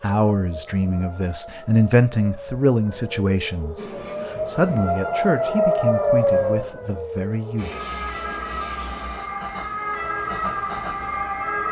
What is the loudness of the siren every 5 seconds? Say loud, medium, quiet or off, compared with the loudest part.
medium, loud, loud.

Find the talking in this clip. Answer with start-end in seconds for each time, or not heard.
0.0-7.8.